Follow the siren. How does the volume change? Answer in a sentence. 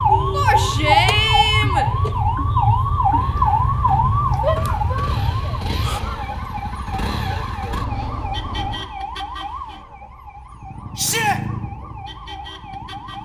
The loudness of the siren goes down.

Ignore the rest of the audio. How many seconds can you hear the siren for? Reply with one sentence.
You can hear the siren for 13 seconds altogether.